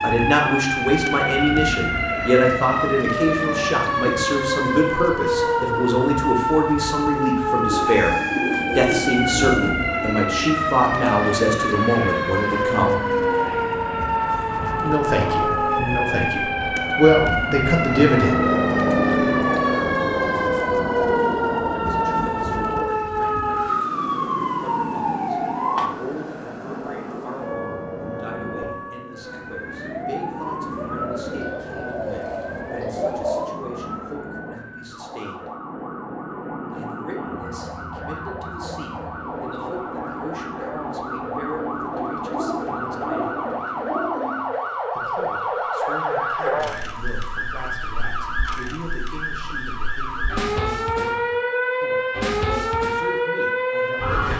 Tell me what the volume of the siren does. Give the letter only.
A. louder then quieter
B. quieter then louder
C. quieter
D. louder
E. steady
B.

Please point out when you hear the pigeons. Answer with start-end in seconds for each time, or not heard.
7.7-9.7, 30.8-33.5, 41.9-44.5.